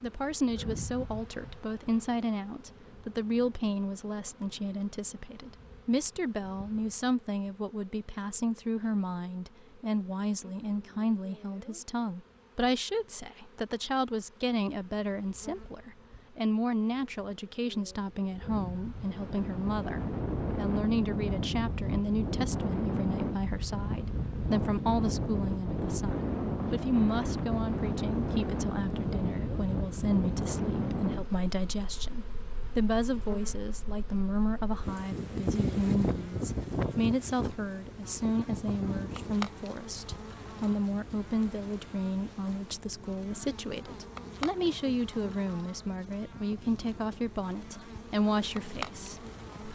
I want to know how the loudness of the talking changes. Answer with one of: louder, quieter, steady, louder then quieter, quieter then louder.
steady.